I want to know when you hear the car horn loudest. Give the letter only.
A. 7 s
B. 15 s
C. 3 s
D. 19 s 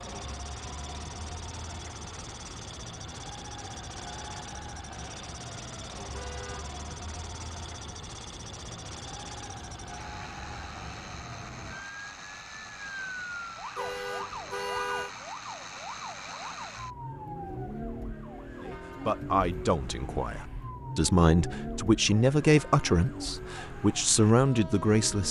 B.